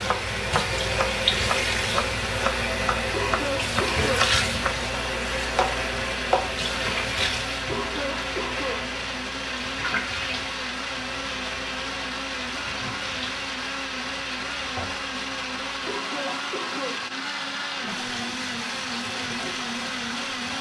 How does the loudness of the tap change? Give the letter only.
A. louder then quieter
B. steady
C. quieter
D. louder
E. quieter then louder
C.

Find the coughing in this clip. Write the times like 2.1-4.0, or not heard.
3.1-4.3, 7.7-8.9, 15.8-17.1.